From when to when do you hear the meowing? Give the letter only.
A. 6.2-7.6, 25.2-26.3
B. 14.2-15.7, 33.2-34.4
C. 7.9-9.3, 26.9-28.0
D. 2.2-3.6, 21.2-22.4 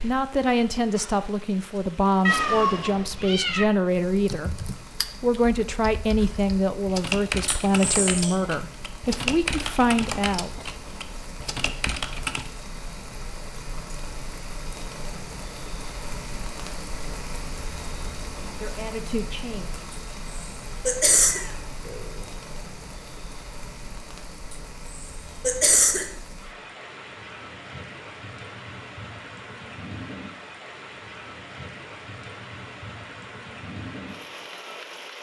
D.